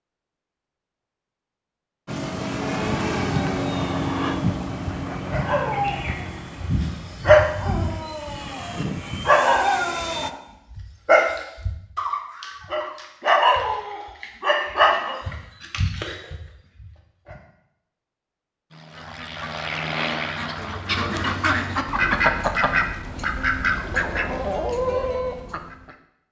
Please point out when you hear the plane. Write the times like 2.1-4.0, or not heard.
2.0-10.3, 18.7-21.9.